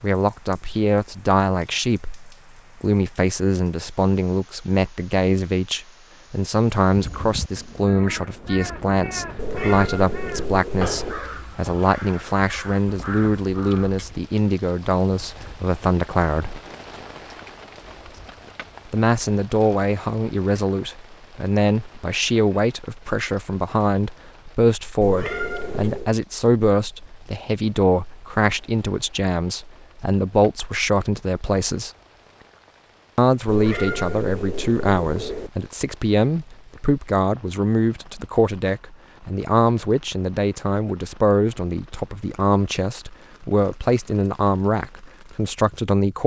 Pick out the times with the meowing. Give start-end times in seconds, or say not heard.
9.3-11.2, 25.0-26.1, 33.5-35.5.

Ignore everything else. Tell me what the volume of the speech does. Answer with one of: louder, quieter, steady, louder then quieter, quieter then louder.
steady.